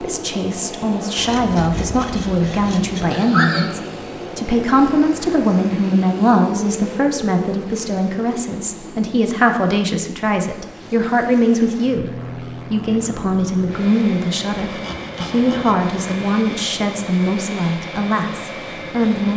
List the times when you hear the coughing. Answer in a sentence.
You can hear the coughing from 3.1 to 3.7 s.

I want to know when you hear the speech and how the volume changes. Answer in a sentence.
You can hear the speech from 0.0 to 19.3 s, at a steady volume.